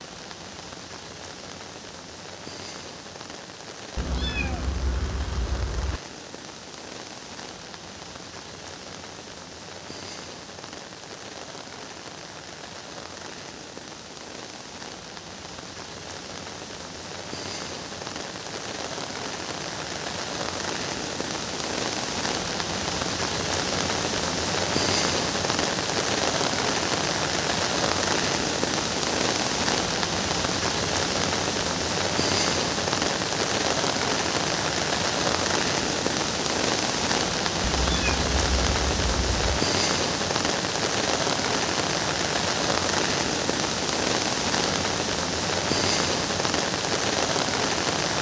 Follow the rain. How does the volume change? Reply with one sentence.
The volume of the rain goes up.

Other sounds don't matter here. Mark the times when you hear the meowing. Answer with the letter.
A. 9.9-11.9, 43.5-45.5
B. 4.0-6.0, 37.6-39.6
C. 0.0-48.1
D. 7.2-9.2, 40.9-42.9
B.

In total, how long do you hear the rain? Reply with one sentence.
You can hear the rain for 48 seconds altogether.